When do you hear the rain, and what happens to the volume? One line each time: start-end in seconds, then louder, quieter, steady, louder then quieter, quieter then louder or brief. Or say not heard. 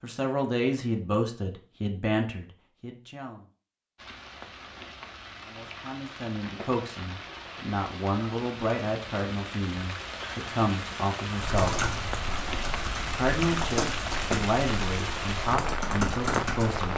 4.0-16.9 louder.